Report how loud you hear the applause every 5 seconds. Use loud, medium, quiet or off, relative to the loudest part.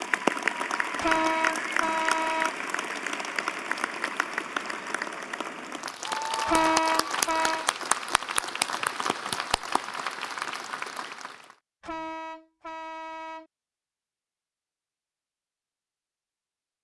loud, loud, medium, off.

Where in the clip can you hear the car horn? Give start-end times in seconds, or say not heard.
1.0-2.5, 6.5-7.7, 11.8-13.4.